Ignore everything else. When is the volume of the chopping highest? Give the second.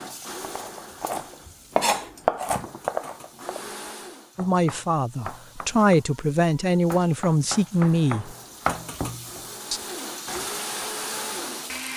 2 s.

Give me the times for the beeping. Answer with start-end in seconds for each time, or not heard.
not heard.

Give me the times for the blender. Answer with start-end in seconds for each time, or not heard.
0.0-4.3, 7.7-11.9.